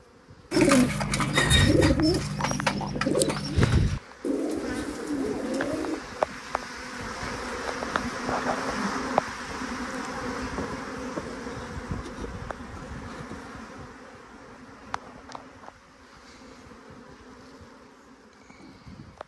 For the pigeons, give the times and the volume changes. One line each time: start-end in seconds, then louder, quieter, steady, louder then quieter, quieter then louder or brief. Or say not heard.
0.5-6.0 quieter.